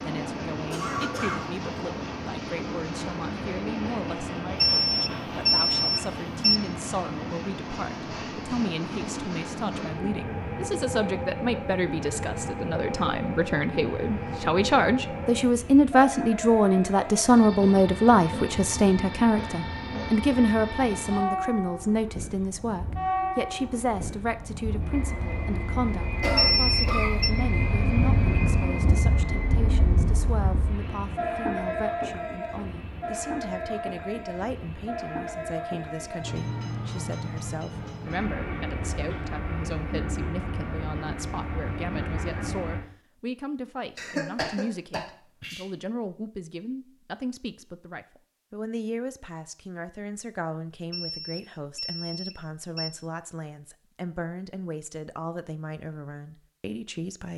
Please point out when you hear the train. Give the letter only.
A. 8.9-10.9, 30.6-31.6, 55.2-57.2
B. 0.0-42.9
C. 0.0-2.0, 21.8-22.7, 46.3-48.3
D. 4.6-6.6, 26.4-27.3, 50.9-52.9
B.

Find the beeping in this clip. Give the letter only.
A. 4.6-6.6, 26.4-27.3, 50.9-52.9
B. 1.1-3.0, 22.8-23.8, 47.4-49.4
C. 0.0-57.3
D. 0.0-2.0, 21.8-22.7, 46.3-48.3
A.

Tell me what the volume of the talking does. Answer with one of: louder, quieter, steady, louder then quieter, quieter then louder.
louder then quieter.